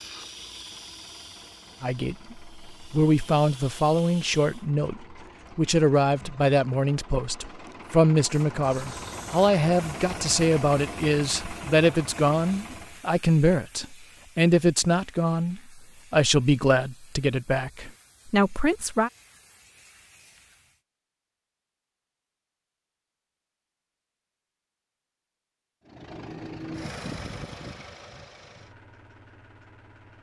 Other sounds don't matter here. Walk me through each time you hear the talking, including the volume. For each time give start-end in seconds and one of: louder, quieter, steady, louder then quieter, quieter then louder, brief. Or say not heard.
1.8-19.1 steady.